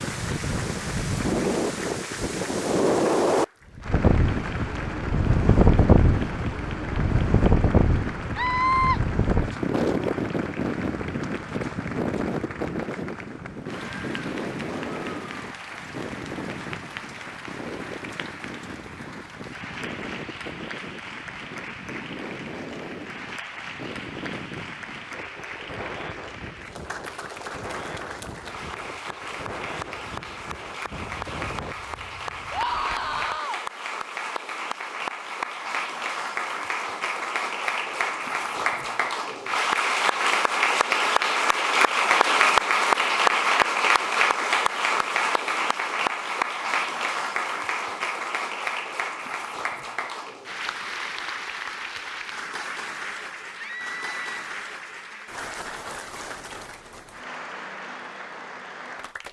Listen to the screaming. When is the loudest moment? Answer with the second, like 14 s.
9 s.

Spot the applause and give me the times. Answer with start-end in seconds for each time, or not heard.
0.0-59.2.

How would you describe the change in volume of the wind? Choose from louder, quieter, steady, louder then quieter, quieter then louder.
quieter.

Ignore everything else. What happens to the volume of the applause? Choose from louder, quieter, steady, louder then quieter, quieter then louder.
louder then quieter.